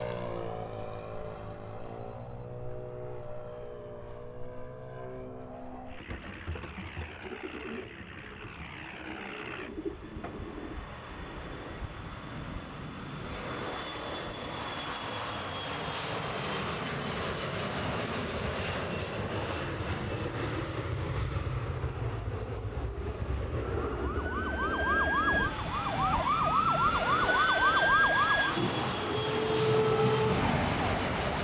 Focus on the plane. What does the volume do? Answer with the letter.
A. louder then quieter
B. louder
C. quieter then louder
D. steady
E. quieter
B.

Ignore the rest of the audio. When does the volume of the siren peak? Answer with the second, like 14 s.
28 s.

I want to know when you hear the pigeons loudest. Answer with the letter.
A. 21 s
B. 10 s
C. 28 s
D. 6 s
B.